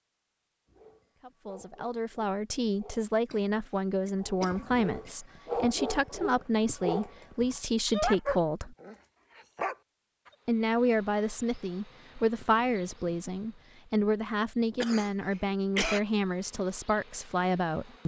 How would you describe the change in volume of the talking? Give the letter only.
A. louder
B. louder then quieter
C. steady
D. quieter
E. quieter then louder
C.